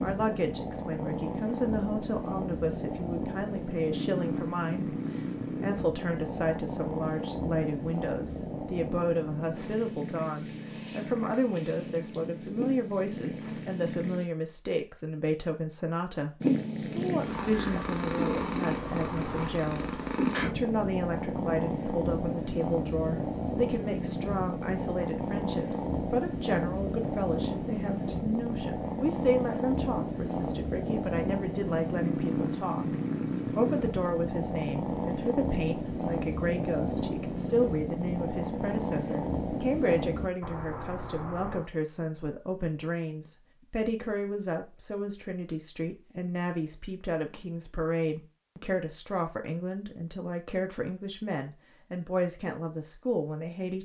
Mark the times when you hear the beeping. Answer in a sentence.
You can hear the beeping from 18.9 to 19.6 s and from 40.4 to 41.7 s.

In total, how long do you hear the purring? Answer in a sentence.
The purring can be heard for 38 seconds in total.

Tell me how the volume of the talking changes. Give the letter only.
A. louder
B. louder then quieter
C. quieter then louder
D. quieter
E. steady
E.